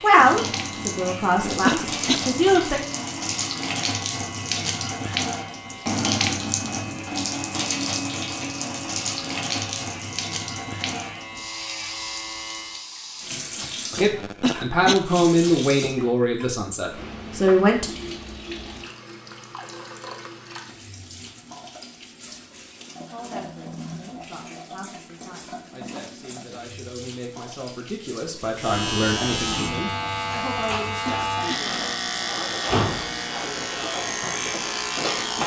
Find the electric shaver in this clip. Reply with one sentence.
The electric shaver can be heard from 0.0 to 12.8 s and from 28.6 to 35.4 s.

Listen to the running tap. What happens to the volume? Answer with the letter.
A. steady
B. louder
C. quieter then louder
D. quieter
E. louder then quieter
D.